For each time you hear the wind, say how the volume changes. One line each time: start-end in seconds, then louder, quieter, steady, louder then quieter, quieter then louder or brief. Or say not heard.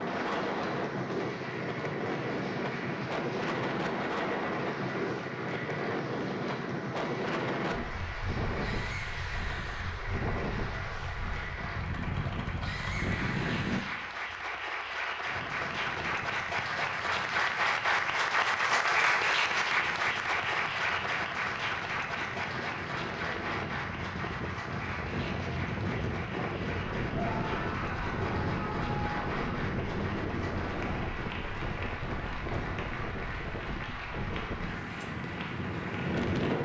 0.0-36.5 quieter then louder.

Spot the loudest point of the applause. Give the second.
19 s.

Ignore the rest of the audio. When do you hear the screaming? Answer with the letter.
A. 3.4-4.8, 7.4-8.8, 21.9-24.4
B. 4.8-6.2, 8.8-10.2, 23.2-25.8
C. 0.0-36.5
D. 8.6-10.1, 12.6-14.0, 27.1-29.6
D.